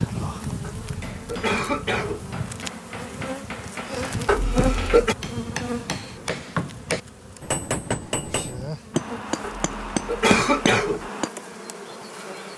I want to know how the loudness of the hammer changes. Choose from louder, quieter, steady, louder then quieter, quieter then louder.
louder.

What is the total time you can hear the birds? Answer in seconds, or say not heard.
not heard.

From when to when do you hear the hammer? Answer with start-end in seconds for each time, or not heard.
1.0-11.3.